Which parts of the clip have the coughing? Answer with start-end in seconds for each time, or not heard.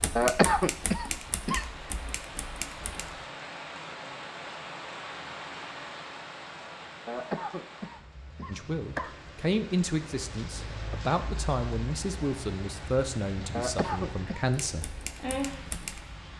0.1-1.6, 7.0-9.2, 13.5-14.4.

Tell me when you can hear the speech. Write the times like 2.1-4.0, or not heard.
8.4-14.9.